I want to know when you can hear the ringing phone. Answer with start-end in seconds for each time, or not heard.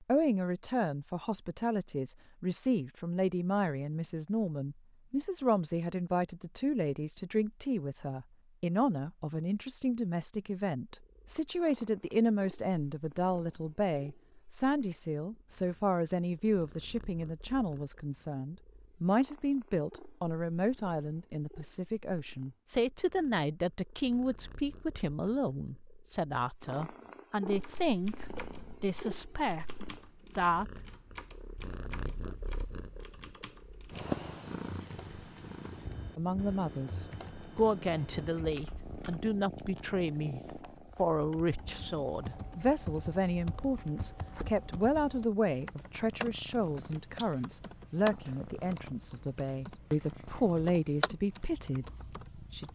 not heard.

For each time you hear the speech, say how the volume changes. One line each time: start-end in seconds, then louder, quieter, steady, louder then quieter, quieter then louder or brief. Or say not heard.
0.0-30.8 steady
36.1-52.7 steady.